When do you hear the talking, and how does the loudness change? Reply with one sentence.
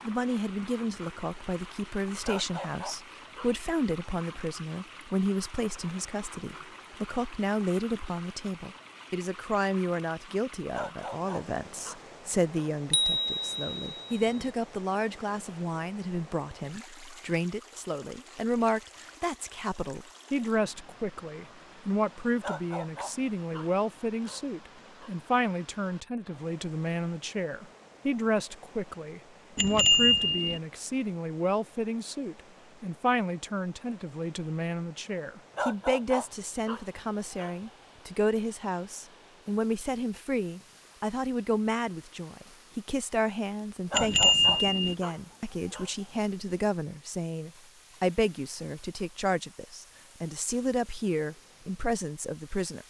The talking can be heard from 0.1 to 52.8 s, at a steady volume.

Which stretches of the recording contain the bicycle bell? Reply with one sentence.
You can hear the bicycle bell from 12.9 to 14.4 s, from 29.6 to 30.6 s and from 43.9 to 45.0 s.